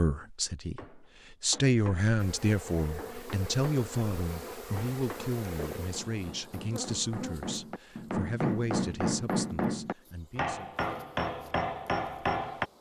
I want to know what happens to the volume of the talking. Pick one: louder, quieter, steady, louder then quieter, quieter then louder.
quieter.